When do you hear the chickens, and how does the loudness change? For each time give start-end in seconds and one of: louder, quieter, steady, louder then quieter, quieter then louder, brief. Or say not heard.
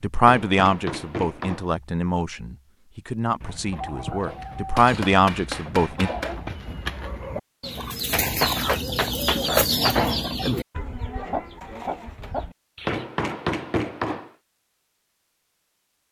3.4-13.1 louder then quieter.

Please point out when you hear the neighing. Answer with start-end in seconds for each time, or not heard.
not heard.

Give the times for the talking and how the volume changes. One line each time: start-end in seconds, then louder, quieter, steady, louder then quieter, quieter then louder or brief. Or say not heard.
0.0-6.1 quieter then louder.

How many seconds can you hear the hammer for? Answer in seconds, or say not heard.
7 s.